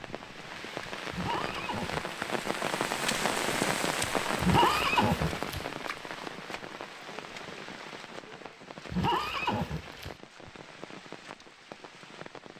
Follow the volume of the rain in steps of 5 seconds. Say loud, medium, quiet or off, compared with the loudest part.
loud, medium, quiet.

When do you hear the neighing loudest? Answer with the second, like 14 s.
5 s.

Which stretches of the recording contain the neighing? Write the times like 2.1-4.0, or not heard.
1.1-2.0, 4.4-5.7, 8.9-10.2.